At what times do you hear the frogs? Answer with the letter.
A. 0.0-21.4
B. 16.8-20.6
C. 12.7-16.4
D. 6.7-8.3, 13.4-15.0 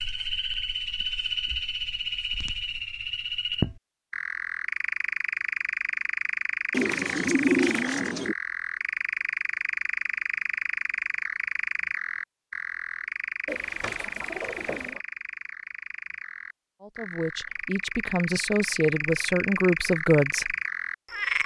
A.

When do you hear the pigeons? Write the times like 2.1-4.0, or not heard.
6.7-8.3, 13.4-15.0.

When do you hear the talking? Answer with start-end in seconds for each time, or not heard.
16.8-20.6.